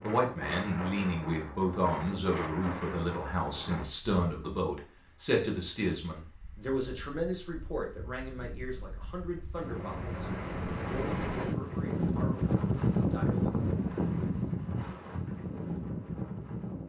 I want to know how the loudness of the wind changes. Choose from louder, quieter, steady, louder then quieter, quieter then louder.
quieter then louder.